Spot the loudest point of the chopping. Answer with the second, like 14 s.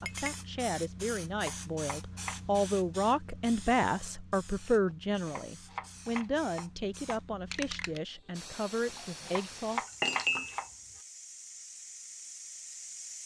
10 s.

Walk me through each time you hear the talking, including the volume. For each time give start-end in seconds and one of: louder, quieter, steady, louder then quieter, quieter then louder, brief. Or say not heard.
0.0-9.8 louder then quieter.